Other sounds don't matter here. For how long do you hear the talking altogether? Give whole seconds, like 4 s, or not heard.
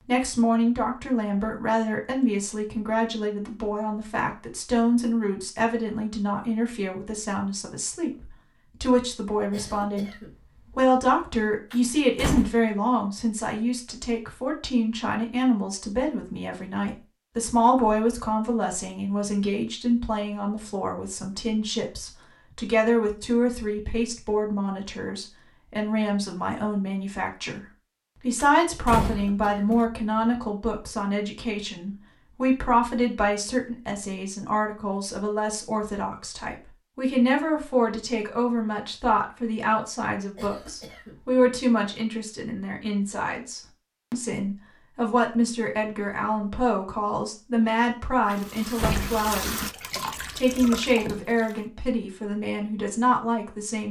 53 s.